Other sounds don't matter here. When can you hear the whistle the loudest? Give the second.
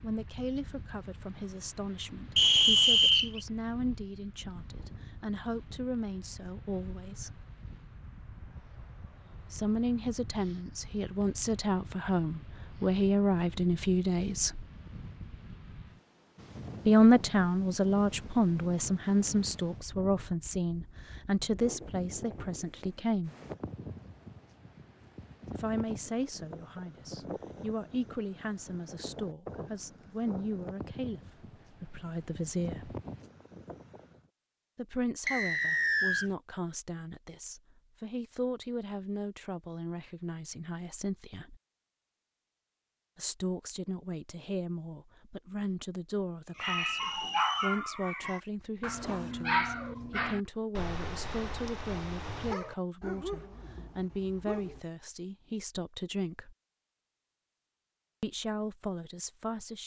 3 s.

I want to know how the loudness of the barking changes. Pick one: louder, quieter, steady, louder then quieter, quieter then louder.
quieter.